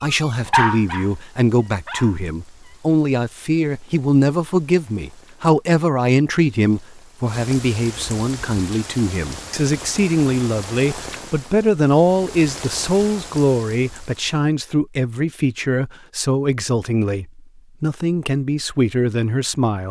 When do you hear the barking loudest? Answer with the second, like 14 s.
1 s.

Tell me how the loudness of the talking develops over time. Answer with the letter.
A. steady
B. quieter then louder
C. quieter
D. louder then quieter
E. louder
A.